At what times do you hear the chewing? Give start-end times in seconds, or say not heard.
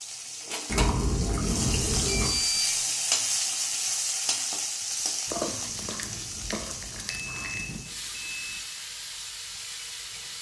0.7-2.4, 5.2-7.8.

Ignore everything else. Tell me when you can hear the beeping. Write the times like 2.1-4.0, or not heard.
2.1-2.8, 7.0-8.6.